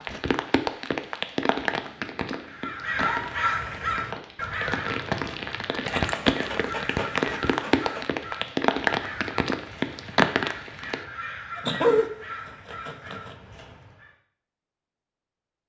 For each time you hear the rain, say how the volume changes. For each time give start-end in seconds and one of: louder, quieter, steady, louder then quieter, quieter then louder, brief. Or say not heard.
0.0-11.0 quieter then louder.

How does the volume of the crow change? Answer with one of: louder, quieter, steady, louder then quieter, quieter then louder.
quieter.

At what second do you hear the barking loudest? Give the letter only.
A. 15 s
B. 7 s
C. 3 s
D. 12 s
D.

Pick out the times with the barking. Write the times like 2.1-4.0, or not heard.
1.8-3.5, 5.8-8.1, 11.6-12.1, 12.7-13.3.